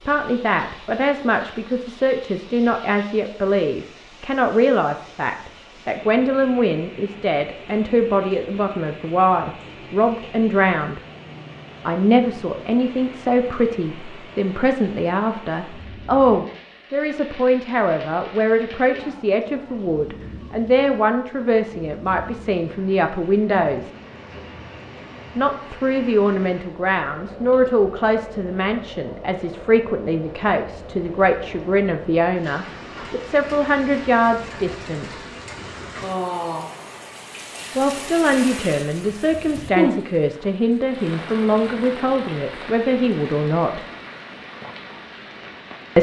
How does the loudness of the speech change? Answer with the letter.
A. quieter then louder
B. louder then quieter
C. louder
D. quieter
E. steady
E.